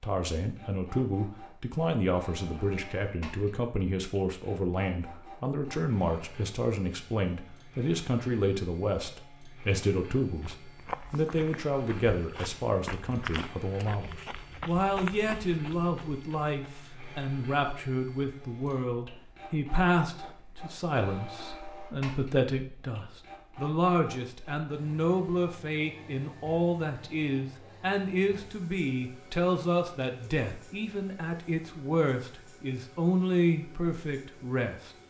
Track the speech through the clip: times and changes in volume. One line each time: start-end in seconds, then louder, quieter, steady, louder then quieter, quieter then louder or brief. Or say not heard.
0.0-34.9 steady.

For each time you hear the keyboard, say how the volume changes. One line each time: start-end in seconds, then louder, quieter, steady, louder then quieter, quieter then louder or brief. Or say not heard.
not heard.